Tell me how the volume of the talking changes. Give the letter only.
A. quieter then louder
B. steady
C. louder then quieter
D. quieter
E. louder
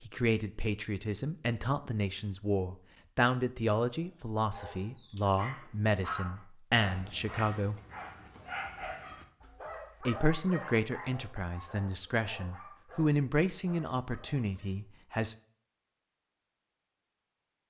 B.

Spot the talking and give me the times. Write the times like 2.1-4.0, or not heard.
0.1-7.8, 10.0-15.3.